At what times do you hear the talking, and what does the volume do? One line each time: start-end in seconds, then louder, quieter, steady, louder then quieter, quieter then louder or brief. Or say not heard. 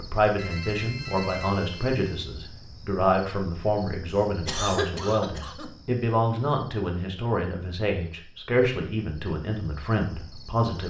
0.0-10.8 steady.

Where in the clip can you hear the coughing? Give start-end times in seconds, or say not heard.
4.2-5.7.